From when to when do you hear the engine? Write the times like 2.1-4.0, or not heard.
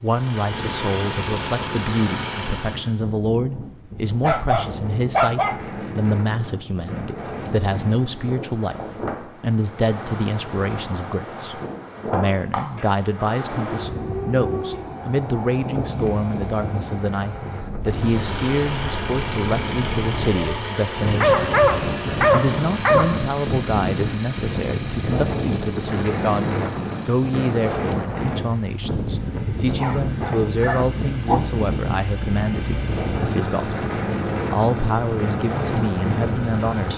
0.0-2.9, 17.8-36.9.